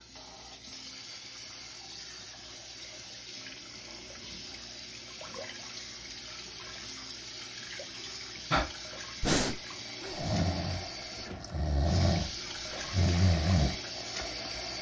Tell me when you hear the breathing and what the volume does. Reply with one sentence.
The breathing can be heard from 8.5 to 13.8 s, getting quieter then louder.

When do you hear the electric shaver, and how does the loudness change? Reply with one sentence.
You can't hear the electric shaver here.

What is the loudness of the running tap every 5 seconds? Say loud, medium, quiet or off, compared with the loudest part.
medium, loud, loud.